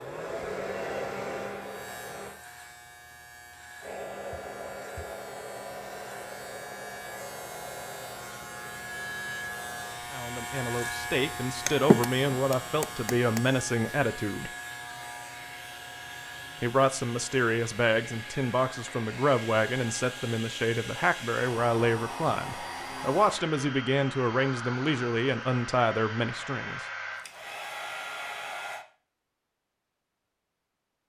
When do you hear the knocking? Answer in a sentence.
You can hear the knocking from 11.7 to 13.4 s.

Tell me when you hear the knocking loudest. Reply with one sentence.
The loudest moment of the knocking is at 12 seconds.